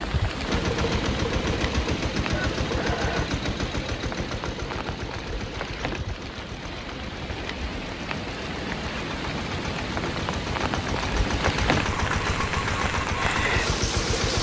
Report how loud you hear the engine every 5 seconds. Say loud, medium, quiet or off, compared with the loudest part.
loud, medium, loud.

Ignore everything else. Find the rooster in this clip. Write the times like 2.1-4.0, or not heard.
2.3-3.3.